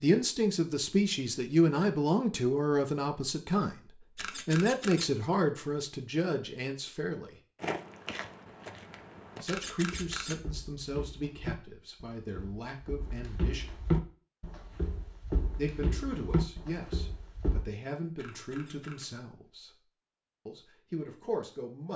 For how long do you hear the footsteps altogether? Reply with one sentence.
The footsteps can be heard for 10 seconds in total.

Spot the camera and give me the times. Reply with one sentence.
The camera can be heard from 4.2 to 5.1 s, from 9.4 to 10.4 s and from 18.1 to 19.1 s.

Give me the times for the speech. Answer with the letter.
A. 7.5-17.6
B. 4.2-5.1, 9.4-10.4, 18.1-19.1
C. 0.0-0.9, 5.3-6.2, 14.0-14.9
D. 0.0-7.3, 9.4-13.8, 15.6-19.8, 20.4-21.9
D.